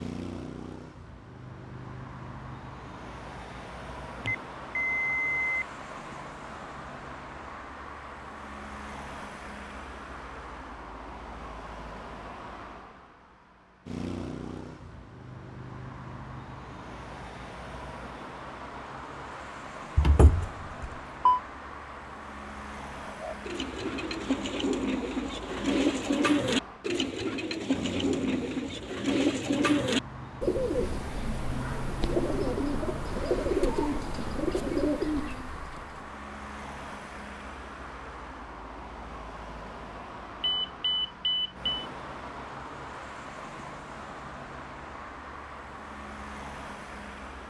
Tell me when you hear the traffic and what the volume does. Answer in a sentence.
The traffic can be heard from 0.0 to 47.4 s, at a steady volume.